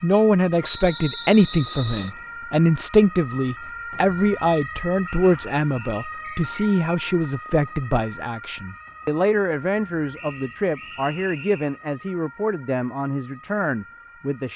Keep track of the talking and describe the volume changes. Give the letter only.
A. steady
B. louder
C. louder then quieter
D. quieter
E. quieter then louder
D.